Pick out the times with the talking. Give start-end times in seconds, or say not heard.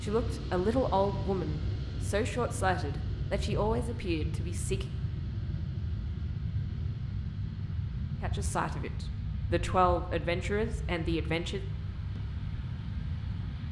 0.0-4.8, 8.2-11.6.